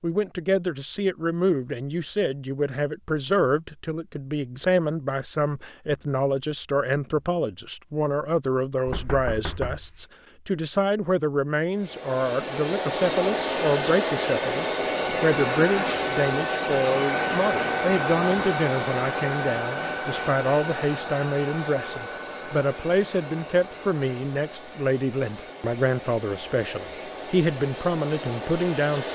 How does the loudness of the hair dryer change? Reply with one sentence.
The volume of the hair dryer goes down.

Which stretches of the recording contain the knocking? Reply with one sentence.
The knocking can be heard from 8.8 to 10.1 s.